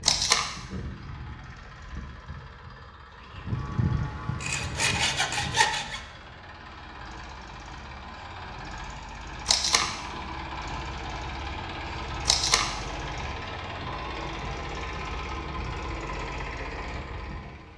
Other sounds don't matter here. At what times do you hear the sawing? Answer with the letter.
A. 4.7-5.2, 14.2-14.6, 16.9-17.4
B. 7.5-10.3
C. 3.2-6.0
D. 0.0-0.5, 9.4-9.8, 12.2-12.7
C.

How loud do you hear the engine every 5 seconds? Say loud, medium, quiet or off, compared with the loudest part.
medium, medium, loud, loud.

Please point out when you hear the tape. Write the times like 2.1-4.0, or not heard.
0.0-0.5, 9.4-9.8, 12.2-12.7.